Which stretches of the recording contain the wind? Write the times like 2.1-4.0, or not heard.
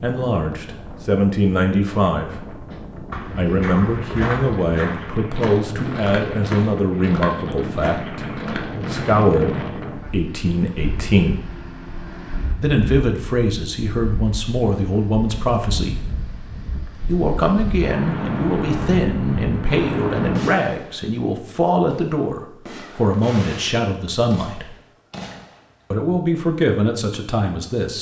0.1-20.4.